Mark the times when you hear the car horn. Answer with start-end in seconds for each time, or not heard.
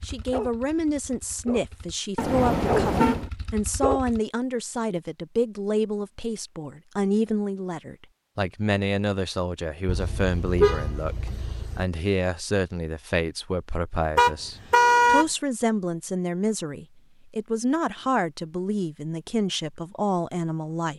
2.1-3.3, 9.8-11.8, 14.2-15.2.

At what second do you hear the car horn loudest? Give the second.
15 s.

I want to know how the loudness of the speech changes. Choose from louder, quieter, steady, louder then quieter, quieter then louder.
steady.